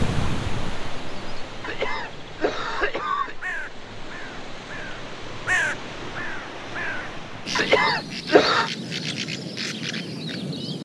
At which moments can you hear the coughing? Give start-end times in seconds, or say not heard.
1.6-3.4, 7.5-8.7.